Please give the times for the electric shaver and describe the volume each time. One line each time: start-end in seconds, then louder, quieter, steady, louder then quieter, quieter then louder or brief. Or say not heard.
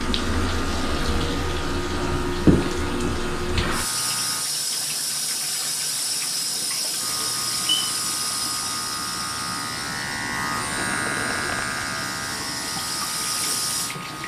0.0-4.5 steady
7.0-14.2 louder then quieter.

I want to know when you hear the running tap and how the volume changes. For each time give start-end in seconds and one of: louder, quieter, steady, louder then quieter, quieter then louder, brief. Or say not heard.
0.0-14.2 quieter.